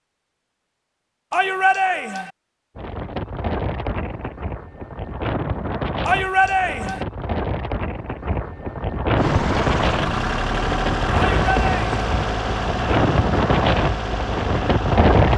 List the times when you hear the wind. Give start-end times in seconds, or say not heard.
2.8-15.3.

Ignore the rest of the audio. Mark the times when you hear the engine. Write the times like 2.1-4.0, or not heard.
9.2-15.3.